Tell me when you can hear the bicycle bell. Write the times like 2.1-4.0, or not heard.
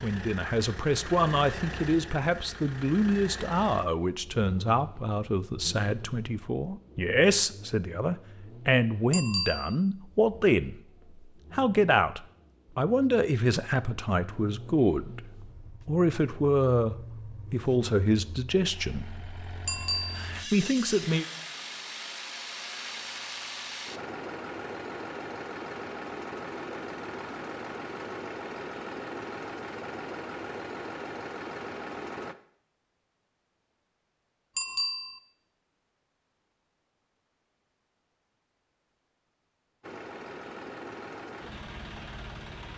9.1-9.8, 19.6-20.3, 34.5-35.2.